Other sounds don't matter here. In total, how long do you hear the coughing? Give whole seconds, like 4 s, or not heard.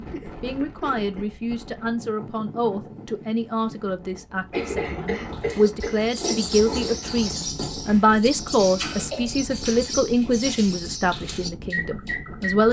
4 s.